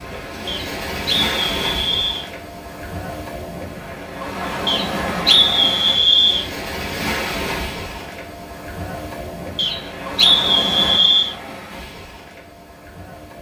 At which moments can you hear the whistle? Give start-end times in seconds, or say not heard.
0.5-2.2, 4.7-6.5, 9.6-11.3.